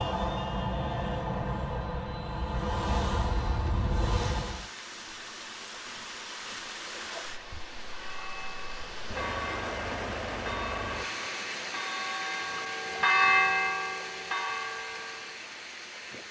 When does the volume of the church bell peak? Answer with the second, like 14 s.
13 s.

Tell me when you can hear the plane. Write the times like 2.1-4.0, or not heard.
0.0-4.7.